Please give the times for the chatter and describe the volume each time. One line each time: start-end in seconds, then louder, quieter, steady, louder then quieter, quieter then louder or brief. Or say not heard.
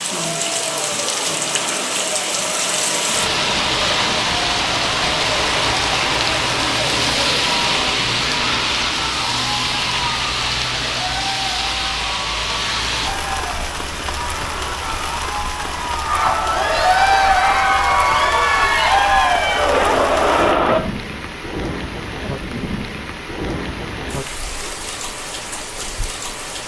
0.0-20.8 louder.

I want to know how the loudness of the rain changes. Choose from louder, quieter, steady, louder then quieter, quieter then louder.
quieter.